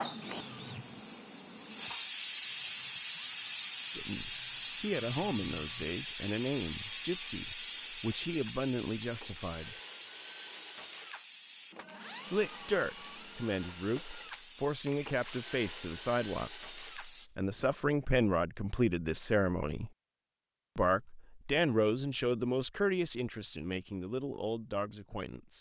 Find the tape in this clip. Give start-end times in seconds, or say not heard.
not heard.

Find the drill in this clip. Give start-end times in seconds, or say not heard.
0.0-17.8.